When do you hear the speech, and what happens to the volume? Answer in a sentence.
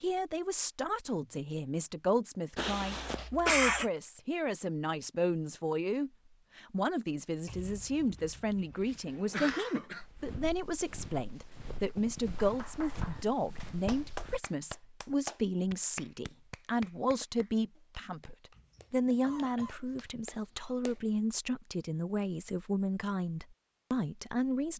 The speech can be heard from 0.0 to 24.7 s, at a steady volume.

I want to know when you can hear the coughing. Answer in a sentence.
You can hear the coughing from 2.5 to 3.9 s, from 9.1 to 10.0 s and from 18.6 to 20.1 s.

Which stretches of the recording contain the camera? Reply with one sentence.
You can't hear the camera here.